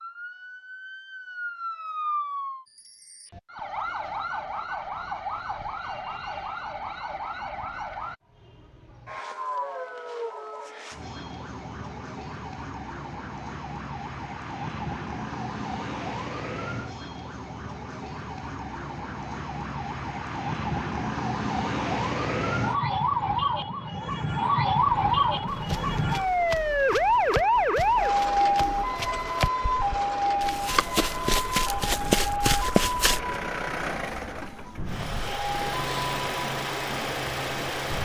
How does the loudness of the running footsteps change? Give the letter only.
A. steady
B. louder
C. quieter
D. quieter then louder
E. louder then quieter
B.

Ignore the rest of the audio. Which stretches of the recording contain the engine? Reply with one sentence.
The engine can be heard from 24.8 to 37.9 s.